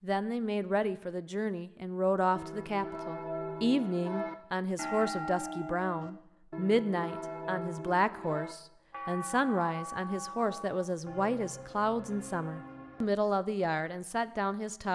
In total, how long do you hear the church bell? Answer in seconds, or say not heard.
11 s.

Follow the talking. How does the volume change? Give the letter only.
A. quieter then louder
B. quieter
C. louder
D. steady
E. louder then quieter
D.